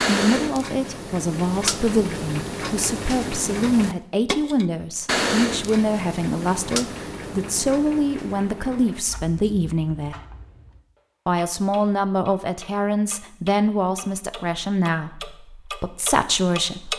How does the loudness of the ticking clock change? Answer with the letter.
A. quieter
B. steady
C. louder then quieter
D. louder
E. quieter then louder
E.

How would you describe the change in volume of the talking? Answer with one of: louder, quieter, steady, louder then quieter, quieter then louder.
steady.